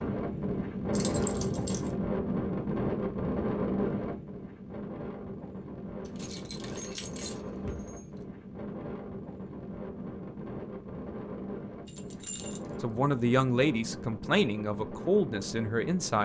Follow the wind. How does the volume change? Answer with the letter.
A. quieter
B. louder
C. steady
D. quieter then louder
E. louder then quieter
A.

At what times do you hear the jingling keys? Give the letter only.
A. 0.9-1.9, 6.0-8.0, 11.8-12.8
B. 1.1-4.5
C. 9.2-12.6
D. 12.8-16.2
A.